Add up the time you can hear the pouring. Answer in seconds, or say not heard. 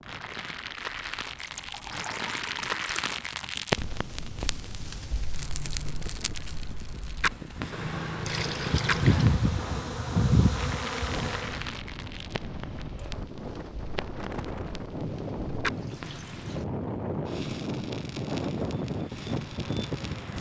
4 s.